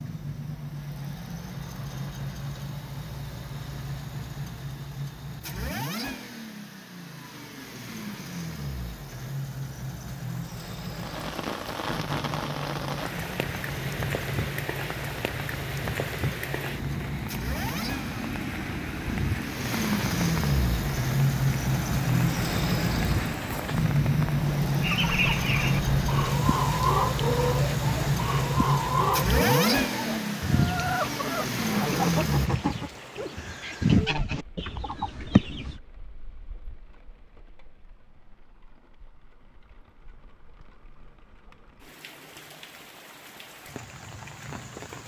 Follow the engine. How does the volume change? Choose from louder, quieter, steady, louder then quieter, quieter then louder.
louder.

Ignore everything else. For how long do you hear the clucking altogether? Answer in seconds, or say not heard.
11 s.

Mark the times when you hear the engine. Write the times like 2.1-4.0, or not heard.
0.0-32.5.